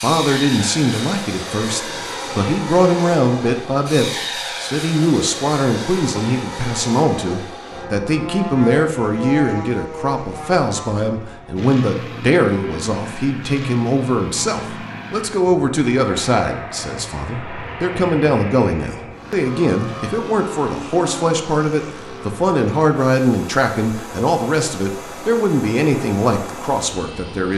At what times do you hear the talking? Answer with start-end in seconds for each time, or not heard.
0.0-27.5.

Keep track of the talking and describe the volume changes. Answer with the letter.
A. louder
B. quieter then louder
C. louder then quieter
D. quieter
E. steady
E.